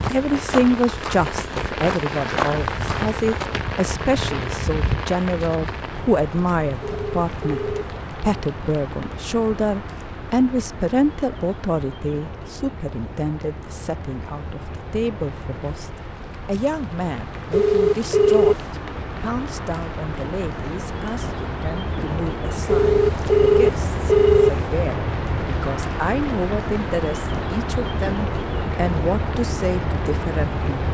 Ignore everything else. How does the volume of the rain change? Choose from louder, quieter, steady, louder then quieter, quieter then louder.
quieter then louder.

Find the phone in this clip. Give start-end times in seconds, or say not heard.
6.8-7.8, 17.5-18.6, 22.6-24.5.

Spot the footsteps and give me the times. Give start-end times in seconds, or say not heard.
0.0-3.6.